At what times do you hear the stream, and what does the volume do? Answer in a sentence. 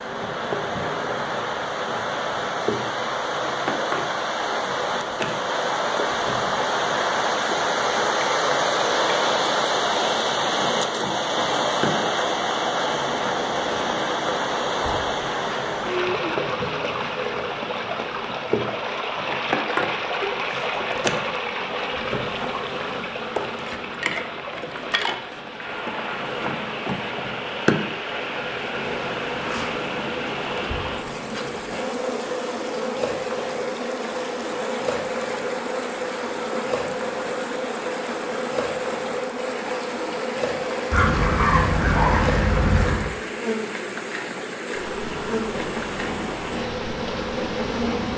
The stream can be heard from 0.0 to 48.1 s, getting quieter.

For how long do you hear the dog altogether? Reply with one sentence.
The dog can be heard for 2 seconds in total.